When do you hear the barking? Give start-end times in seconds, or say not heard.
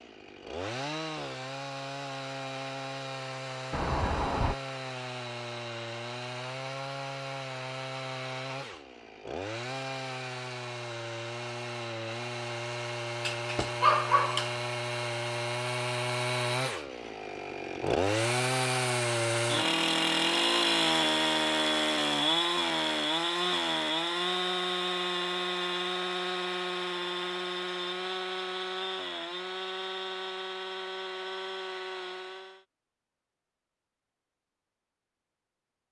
13.2-14.6.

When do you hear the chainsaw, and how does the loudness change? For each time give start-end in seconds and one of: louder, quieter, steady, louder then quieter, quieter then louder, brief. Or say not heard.
0.0-32.6 louder then quieter.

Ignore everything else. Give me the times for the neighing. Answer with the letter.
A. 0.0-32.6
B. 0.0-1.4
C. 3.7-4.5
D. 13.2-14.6
C.